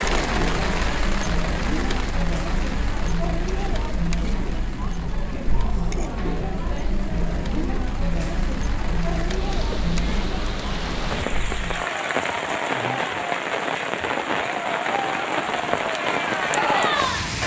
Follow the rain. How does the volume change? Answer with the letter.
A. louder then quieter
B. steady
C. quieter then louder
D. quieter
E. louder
C.